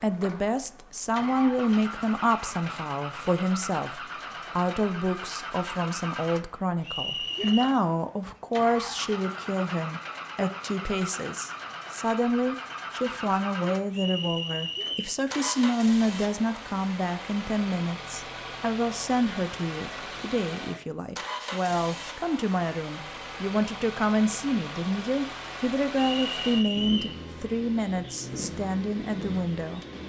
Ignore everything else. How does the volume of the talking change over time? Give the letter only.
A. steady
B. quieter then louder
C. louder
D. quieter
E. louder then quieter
A.